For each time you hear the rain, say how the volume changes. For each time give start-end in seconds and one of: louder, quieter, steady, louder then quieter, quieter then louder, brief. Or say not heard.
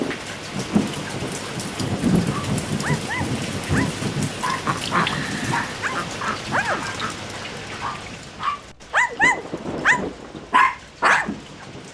0.0-11.9 quieter.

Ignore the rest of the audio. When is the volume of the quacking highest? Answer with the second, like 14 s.
5 s.